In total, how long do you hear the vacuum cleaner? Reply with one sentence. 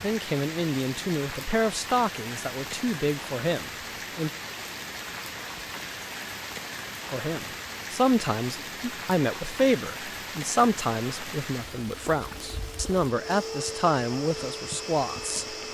The vacuum cleaner can be heard for 3 seconds in total.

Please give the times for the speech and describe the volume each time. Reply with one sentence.
You can hear the speech from 0.0 to 4.3 s, at a steady volume; and from 7.1 to 15.4 s, at a steady volume.